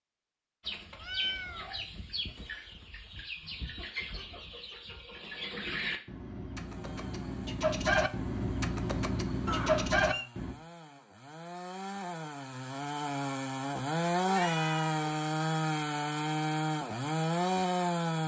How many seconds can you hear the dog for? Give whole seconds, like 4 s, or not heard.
not heard.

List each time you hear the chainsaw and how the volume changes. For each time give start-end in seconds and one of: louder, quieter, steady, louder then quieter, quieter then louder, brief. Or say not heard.
6.6-18.2 louder.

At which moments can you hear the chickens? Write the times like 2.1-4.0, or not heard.
0.6-10.6.